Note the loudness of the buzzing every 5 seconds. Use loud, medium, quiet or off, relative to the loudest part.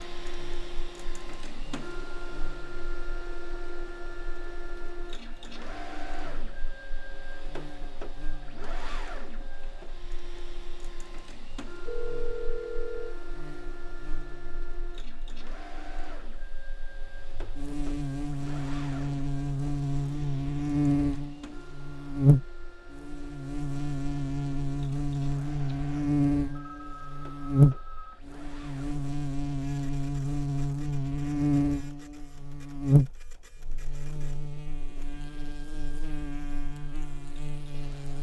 quiet, quiet, quiet, medium, loud, loud, loud, quiet.